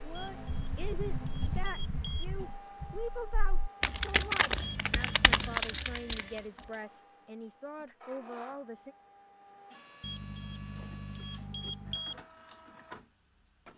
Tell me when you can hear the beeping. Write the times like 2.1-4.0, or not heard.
0.1-2.5, 4.6-5.6, 10.0-12.2.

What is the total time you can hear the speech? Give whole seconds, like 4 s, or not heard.
9 s.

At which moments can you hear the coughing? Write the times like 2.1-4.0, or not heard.
not heard.